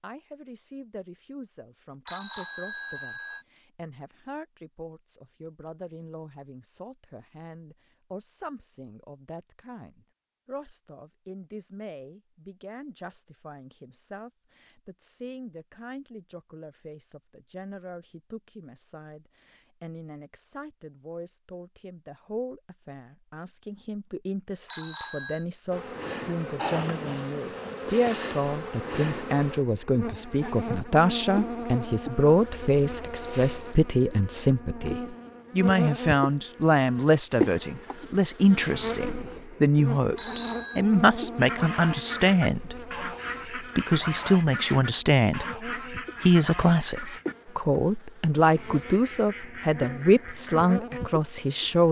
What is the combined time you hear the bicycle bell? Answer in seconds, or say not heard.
3 s.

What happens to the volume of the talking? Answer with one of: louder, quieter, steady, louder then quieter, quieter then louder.
louder.